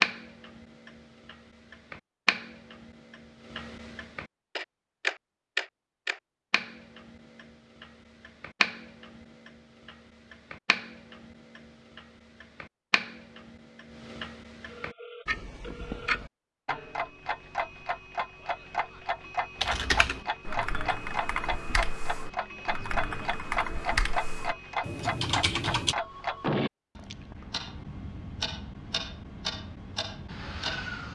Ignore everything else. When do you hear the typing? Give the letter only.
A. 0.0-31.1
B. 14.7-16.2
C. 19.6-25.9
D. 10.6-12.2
C.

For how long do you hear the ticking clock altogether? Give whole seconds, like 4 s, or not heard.
31 s.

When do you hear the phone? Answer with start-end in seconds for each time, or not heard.
14.7-16.2.